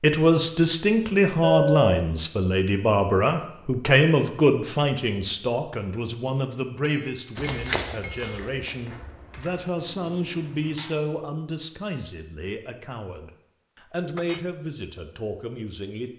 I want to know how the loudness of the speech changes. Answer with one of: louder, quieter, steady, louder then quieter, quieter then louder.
quieter.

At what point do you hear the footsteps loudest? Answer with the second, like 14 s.
8 s.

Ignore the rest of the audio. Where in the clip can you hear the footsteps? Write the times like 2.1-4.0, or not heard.
7.3-9.6.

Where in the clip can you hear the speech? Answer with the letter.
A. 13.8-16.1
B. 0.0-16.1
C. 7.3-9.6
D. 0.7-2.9
B.